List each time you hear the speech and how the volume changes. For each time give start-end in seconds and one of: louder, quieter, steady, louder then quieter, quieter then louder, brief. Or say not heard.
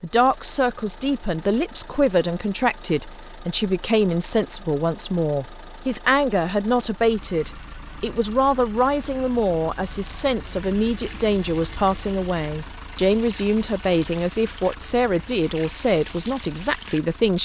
0.0-17.4 steady.